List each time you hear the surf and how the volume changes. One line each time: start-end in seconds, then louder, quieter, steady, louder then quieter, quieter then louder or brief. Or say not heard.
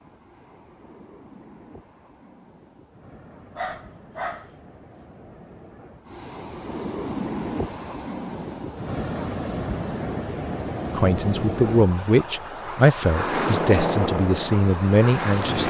0.0-15.6 louder.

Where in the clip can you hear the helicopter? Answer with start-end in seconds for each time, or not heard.
13.1-15.6.